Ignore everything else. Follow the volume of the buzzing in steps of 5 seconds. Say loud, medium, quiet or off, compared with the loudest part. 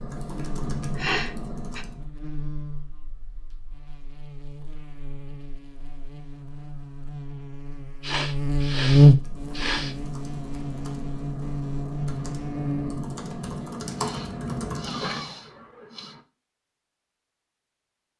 quiet, loud, medium, off.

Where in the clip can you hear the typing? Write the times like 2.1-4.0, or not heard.
0.0-2.1, 9.0-15.3.